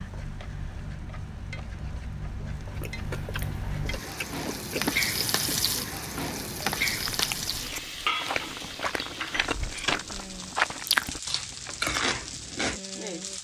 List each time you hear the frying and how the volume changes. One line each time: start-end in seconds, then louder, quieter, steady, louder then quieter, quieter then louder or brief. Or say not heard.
0.0-13.3 louder then quieter.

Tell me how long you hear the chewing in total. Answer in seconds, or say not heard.
10 s.